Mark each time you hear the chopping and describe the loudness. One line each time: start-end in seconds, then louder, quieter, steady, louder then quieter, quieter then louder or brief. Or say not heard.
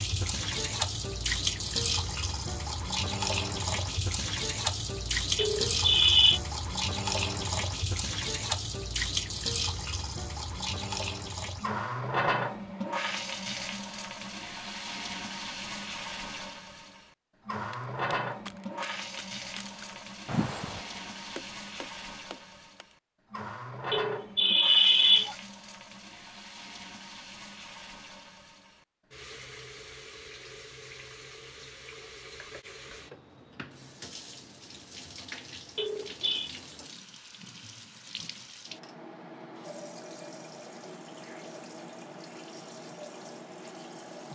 17.7-22.9 louder then quieter.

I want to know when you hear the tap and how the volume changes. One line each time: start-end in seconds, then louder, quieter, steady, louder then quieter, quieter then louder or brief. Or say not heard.
0.0-44.3 quieter.